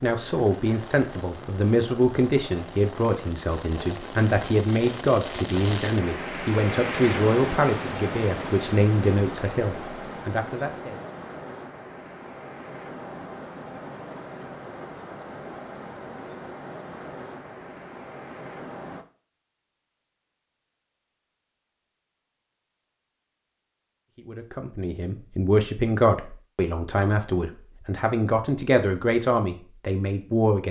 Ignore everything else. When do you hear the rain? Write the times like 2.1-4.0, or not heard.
0.0-19.1.